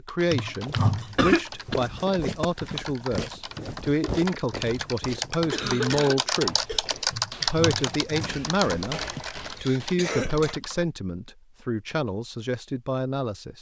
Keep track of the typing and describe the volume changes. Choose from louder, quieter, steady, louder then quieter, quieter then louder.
louder then quieter.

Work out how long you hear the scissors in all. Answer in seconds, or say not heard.
2 s.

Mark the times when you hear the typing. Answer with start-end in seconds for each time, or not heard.
0.1-10.8.